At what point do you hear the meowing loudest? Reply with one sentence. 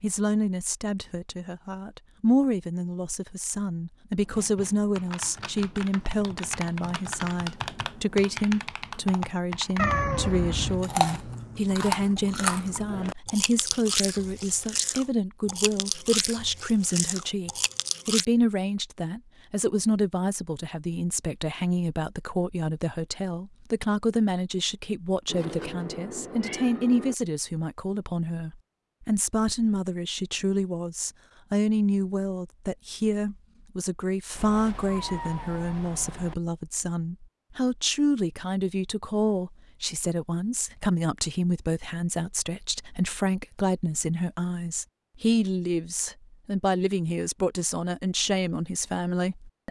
The volume of the meowing peaks at 10 seconds.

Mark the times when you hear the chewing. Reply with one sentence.
You can hear the chewing from 10.6 to 18.2 s.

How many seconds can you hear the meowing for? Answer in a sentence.
The meowing can be heard for 5 seconds in total.